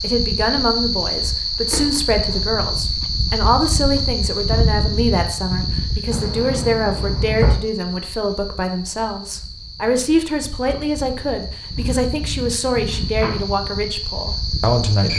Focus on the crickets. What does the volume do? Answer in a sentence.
The volume of the crickets goes down, then up.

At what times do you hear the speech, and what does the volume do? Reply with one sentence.
The speech can be heard from 0.0 to 15.1 s, at a steady volume.